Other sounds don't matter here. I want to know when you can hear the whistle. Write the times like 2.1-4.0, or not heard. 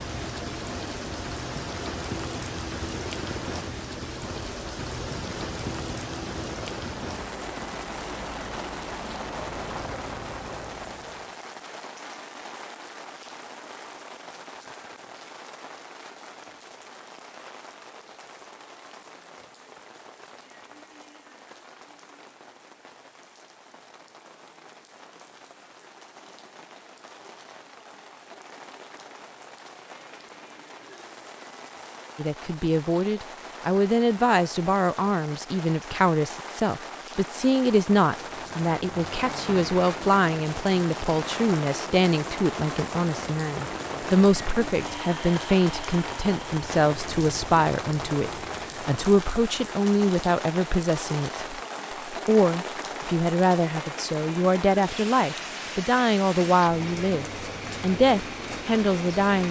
not heard.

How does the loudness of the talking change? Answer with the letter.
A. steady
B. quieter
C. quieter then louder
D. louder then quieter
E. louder
A.